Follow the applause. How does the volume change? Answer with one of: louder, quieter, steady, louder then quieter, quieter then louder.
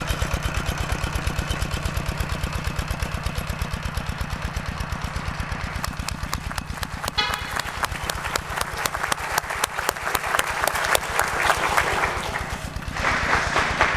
louder.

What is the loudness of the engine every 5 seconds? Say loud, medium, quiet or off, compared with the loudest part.
loud, medium, medium.